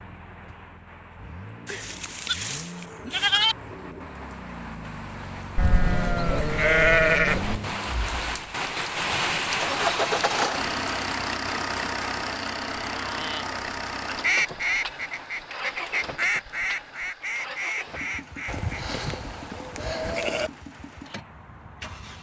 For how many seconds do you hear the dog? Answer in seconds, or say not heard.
not heard.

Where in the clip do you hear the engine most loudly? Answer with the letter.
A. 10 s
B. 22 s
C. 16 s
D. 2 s
A.